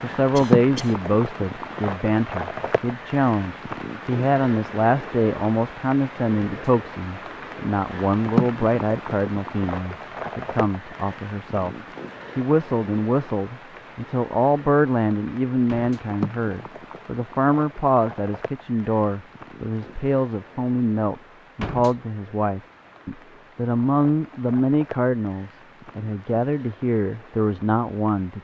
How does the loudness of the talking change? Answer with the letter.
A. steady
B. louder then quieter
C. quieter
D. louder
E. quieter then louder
A.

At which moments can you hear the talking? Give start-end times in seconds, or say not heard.
0.0-11.8, 12.3-28.4.